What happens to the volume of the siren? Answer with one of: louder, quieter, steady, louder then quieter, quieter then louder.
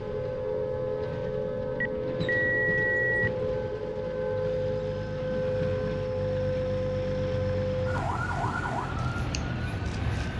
steady.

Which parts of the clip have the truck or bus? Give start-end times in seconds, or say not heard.
0.0-10.3.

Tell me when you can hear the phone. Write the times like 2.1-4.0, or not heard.
1.8-3.3.